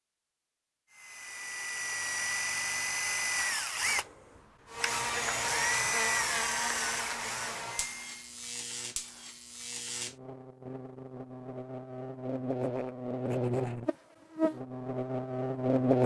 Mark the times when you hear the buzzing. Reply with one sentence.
The buzzing can be heard from 4.7 to 16.0 s.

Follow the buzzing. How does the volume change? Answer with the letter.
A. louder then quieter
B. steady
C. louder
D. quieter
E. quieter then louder
E.